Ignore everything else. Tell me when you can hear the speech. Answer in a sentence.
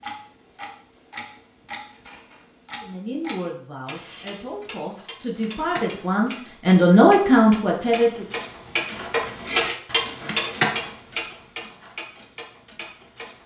The speech can be heard from 2.8 to 8.3 s.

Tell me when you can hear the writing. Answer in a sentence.
You can't hear the writing here.